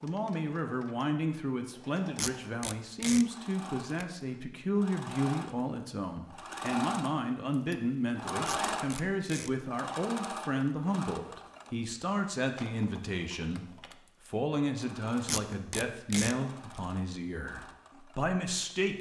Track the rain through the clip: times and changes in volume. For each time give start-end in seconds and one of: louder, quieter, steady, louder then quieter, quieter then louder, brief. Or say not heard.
not heard.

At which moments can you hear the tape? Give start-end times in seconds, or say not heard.
2.1-3.2, 8.4-9.5, 15.2-16.4.